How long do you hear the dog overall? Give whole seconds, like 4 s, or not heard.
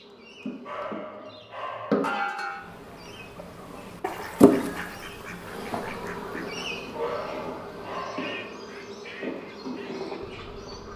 3 s.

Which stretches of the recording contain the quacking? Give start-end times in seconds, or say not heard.
2.5-10.9.